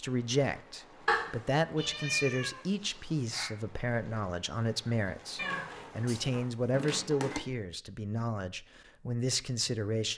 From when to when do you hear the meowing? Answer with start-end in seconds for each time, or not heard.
1.1-3.5, 5.3-7.4.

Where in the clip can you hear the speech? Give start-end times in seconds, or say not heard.
0.0-10.1.